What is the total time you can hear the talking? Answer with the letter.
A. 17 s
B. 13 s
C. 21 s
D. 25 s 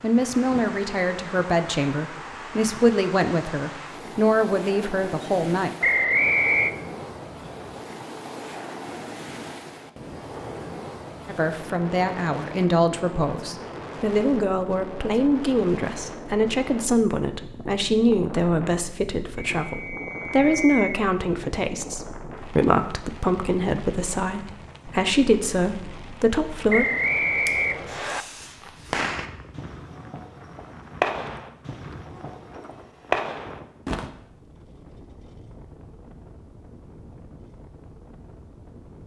C.